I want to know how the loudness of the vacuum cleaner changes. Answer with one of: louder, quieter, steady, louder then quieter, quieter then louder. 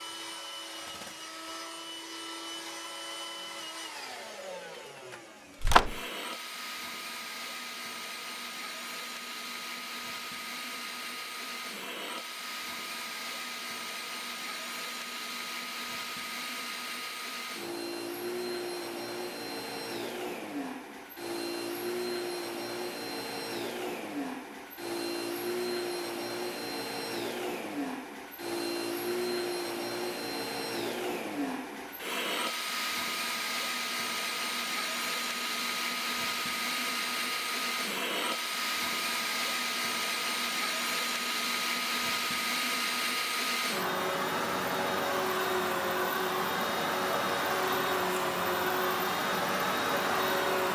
louder.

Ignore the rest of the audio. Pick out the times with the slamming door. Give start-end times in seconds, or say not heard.
5.6-6.0.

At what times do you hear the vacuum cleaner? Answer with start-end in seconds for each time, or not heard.
0.0-50.7.